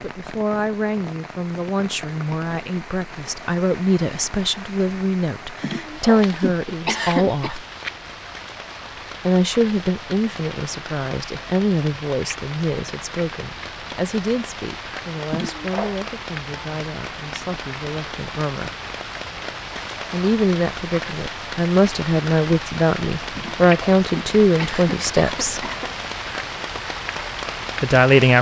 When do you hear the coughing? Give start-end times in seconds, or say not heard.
5.6-7.5, 15.3-16.0, 23.4-25.9.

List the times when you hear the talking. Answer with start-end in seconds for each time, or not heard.
0.0-7.7, 9.2-18.7, 20.1-25.6, 27.8-28.3.